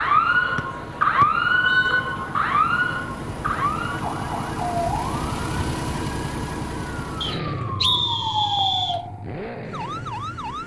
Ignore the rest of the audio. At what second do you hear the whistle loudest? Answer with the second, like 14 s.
8 s.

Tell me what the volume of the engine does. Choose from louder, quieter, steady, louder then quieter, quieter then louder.
louder then quieter.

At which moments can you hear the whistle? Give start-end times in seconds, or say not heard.
0.6-2.0, 7.2-9.0.